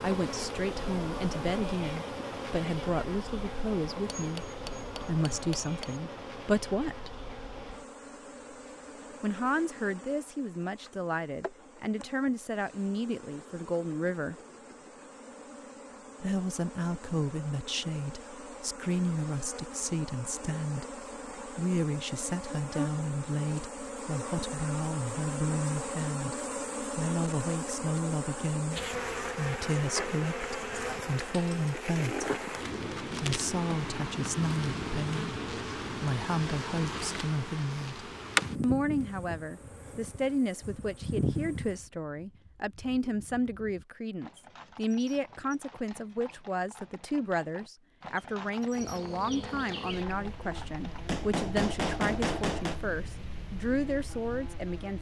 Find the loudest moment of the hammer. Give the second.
52 s.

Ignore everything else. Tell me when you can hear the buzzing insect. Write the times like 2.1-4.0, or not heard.
0.0-41.8, 48.7-54.9.